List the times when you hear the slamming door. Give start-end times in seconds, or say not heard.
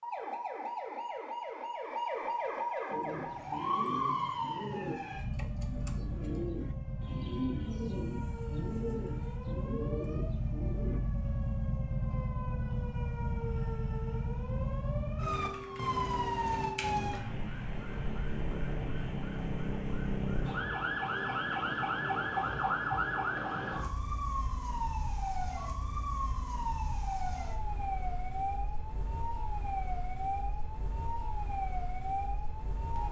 not heard.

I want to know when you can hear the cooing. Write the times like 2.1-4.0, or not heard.
2.9-11.0.